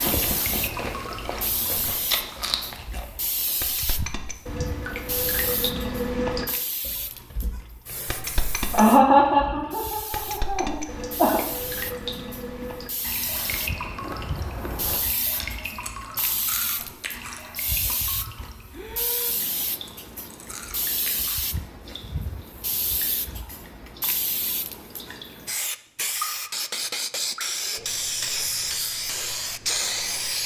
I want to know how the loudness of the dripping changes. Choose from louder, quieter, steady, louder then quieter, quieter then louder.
quieter.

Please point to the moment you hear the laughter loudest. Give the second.
9 s.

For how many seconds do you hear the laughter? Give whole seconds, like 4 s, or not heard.
3 s.